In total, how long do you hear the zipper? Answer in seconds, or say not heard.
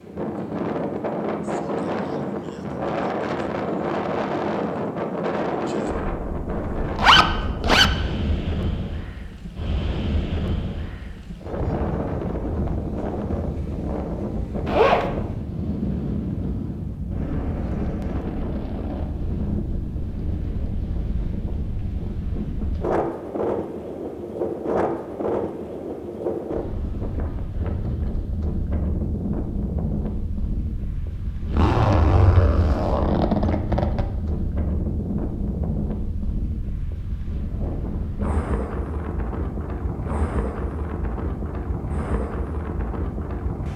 4 s.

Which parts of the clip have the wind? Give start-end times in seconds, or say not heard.
0.0-43.7.